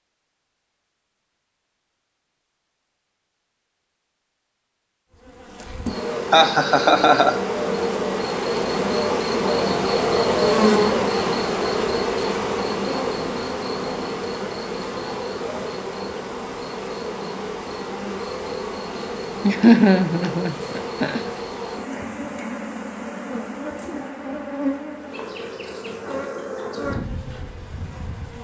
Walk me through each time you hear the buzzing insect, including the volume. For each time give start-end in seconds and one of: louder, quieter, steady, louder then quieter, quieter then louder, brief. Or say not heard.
5.2-28.4 quieter.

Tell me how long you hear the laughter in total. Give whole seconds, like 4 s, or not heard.
3 s.